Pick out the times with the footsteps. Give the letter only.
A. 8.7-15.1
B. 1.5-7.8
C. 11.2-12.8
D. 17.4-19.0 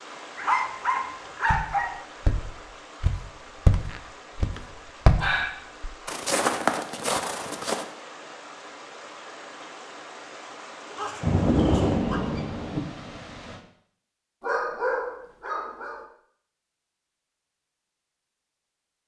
B.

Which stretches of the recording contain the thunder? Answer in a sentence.
The thunder can be heard from 11.2 to 12.8 s.